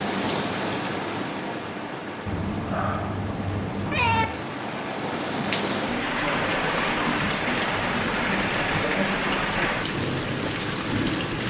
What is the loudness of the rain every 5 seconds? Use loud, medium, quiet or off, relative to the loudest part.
medium, loud, loud.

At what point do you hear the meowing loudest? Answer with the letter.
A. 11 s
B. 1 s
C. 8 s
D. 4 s
D.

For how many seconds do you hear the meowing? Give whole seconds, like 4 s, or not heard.
2 s.